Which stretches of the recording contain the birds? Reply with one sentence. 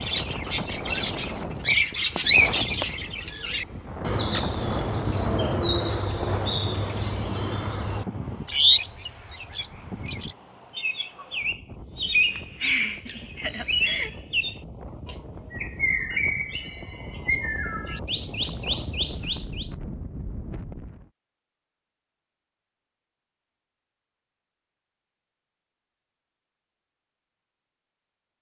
You can hear the birds from 0.0 to 19.7 s.